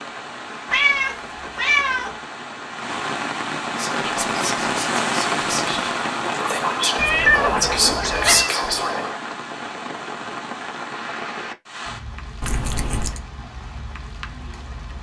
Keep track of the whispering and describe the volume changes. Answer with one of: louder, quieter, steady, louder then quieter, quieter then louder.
louder.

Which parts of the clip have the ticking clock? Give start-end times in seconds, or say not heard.
not heard.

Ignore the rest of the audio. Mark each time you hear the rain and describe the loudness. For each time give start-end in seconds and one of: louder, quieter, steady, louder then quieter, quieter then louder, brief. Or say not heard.
0.0-14.9 louder then quieter.